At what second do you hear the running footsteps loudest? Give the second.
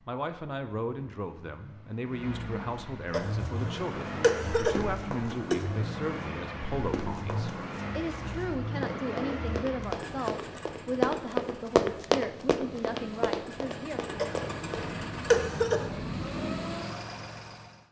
12 s.